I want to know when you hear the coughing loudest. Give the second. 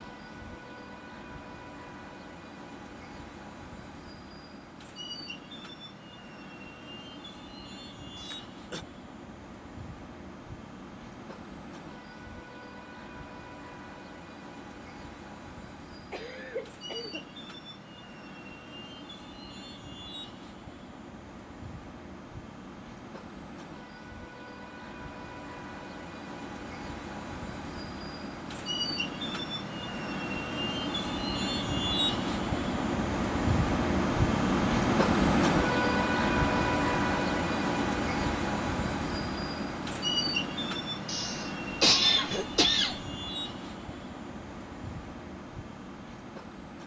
42 s.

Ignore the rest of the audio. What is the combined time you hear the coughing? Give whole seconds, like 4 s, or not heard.
4 s.